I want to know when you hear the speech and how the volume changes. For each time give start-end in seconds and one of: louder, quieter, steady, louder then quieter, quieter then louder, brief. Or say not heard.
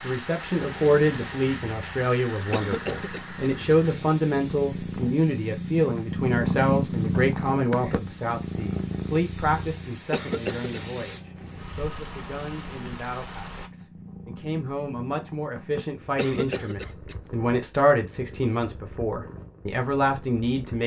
0.0-20.8 quieter then louder.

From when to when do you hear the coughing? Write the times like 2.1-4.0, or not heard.
2.5-4.0, 10.1-10.8, 16.1-17.1.